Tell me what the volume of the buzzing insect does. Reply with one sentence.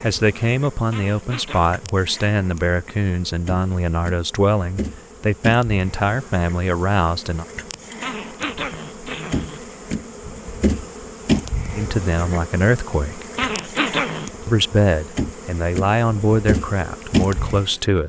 The loudness of the buzzing insect goes up.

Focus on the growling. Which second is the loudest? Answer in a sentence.
The loudest moment of the growling is at 14 seconds.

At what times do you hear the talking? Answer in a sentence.
You can hear the talking from 0.0 to 7.5 s, from 11.8 to 13.2 s and from 14.4 to 18.0 s.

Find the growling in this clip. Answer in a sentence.
The growling can be heard from 0.9 to 1.8 s, from 8.0 to 9.7 s and from 13.3 to 14.3 s.